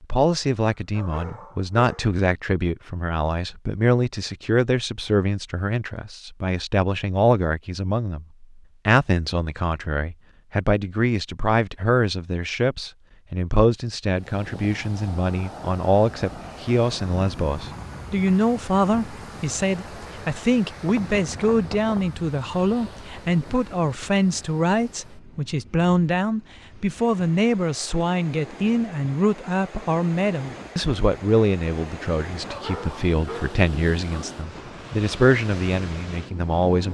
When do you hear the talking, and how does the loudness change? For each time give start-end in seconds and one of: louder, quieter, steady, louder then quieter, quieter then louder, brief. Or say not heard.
0.0-36.9 steady.